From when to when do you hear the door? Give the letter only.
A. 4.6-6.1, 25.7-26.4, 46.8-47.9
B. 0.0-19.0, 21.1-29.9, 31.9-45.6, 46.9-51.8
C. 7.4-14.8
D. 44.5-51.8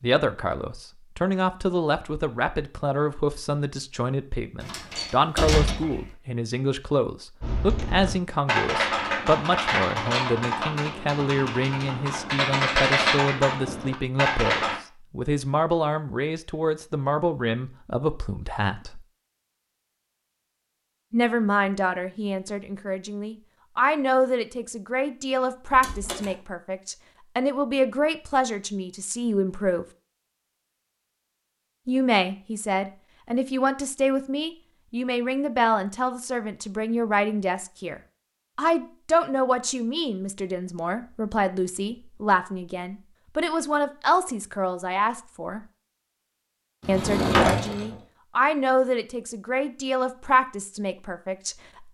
A.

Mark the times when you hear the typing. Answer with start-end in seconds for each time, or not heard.
7.4-14.8.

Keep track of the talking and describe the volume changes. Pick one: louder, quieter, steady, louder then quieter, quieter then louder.
steady.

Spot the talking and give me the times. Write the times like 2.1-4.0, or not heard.
0.0-19.0, 21.1-29.9, 31.9-45.6, 46.9-51.8.